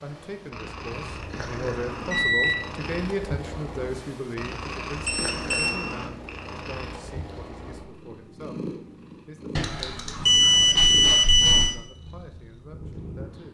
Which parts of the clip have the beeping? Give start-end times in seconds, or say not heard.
0.9-2.5, 5.0-5.7, 9.6-11.8.